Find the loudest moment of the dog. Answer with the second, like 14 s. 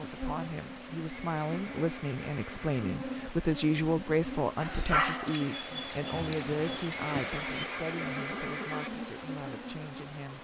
5 s.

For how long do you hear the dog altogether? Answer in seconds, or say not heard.
3 s.